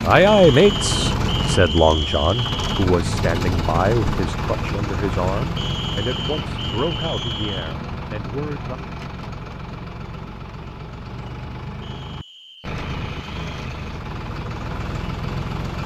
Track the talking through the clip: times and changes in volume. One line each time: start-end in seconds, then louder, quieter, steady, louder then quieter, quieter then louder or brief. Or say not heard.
0.0-8.8 quieter.